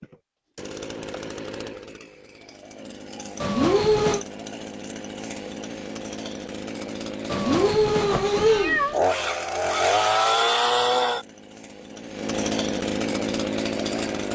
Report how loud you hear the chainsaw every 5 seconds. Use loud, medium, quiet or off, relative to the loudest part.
quiet, loud, loud.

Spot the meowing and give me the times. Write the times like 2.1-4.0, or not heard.
3.4-4.2, 7.2-9.0.